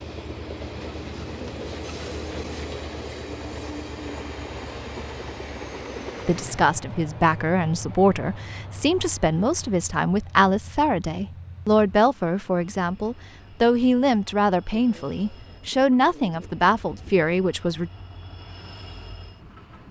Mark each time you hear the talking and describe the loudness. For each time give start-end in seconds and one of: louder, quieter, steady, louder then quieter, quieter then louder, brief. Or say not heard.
6.2-17.9 steady.